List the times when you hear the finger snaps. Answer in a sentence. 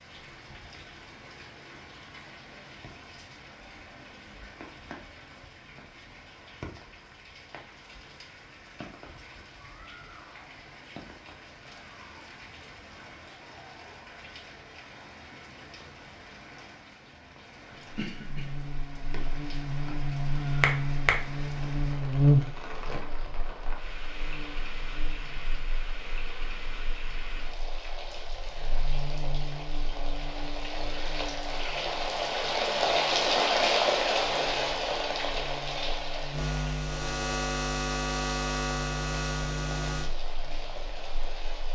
You can hear the finger snaps from 20.6 to 21.1 s.